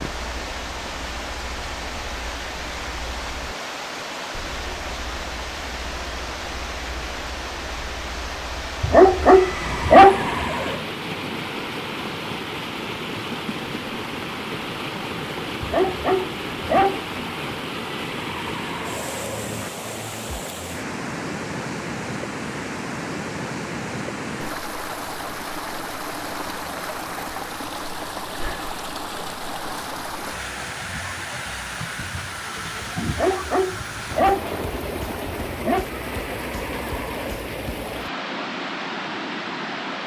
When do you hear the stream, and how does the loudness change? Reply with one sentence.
You can hear the stream from 0.0 to 40.0 s, at a steady volume.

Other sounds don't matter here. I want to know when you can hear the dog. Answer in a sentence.
You can hear the dog from 8.8 to 10.4 s, from 15.6 to 17.1 s and from 33.0 to 35.9 s.